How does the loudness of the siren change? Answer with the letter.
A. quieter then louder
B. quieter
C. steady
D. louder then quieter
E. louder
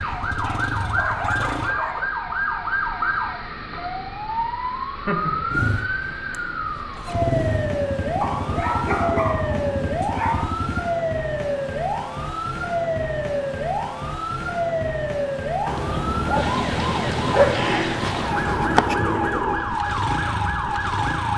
C.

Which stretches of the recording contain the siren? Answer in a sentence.
You can hear the siren from 0.0 to 21.3 s.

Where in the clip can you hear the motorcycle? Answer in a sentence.
The motorcycle can be heard from 0.0 to 1.8 s, from 5.5 to 10.9 s and from 15.8 to 21.3 s.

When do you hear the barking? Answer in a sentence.
You can hear the barking from 0.2 to 2.0 s, from 8.2 to 10.7 s and from 15.7 to 17.6 s.